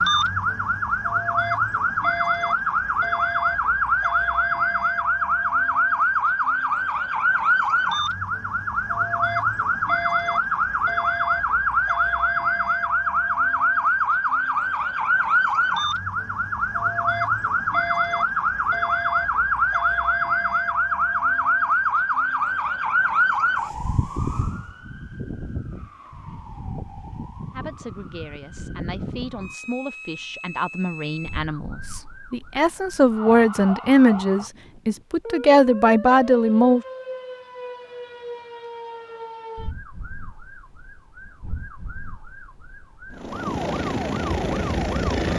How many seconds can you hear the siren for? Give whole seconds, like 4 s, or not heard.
45 s.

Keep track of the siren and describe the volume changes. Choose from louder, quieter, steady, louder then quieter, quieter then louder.
quieter.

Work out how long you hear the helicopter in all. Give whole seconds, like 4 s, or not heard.
2 s.